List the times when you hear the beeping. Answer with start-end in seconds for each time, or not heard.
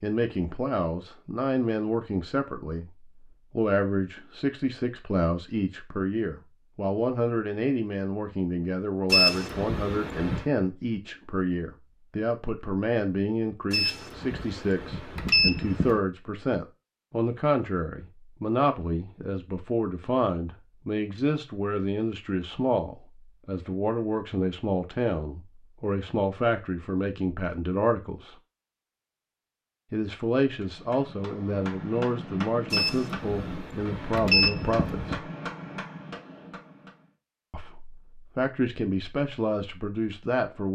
9.1-10.4, 13.7-16.0, 32.7-35.2.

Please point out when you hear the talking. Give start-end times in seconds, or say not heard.
0.0-28.4, 29.9-35.2, 37.5-40.7.